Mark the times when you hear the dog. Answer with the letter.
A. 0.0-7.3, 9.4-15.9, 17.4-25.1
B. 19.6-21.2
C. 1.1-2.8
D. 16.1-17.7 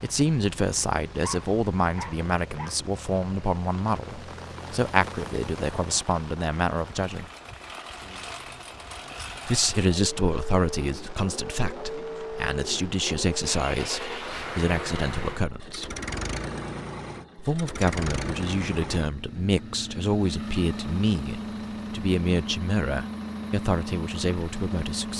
C.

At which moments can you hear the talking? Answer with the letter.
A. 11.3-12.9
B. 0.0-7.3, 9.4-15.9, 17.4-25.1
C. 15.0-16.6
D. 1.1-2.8
B.